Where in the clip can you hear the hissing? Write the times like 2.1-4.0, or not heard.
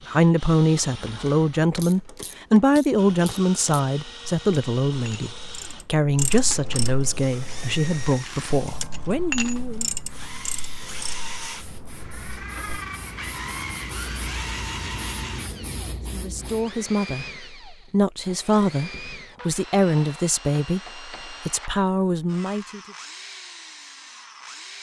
7.1-16.8.